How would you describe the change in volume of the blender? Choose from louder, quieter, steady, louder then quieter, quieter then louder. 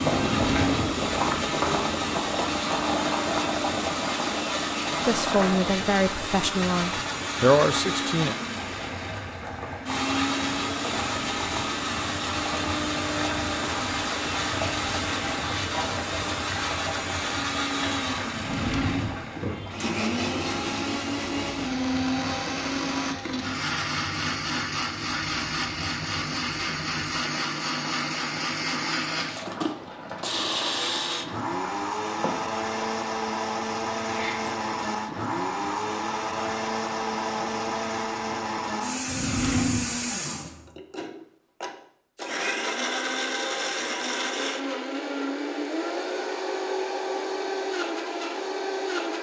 steady.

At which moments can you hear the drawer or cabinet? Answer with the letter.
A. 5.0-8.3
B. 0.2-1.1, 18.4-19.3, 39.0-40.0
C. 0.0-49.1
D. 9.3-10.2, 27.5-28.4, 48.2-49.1
B.